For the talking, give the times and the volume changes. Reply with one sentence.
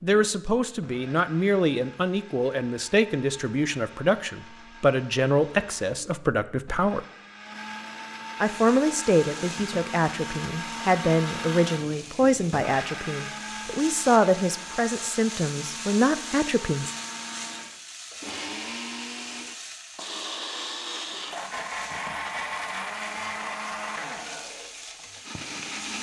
The talking can be heard from 0.0 to 7.0 s, at a steady volume; and from 8.4 to 16.9 s, at a steady volume.